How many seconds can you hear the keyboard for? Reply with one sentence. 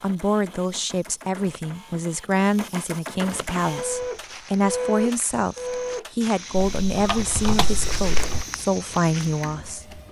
The keyboard can be heard for 2 seconds in total.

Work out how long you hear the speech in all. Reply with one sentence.
You can hear the speech for 10 seconds altogether.